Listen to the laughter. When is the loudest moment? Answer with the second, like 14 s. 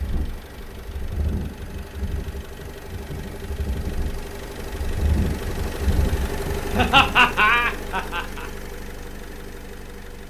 7 s.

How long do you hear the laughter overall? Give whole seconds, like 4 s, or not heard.
2 s.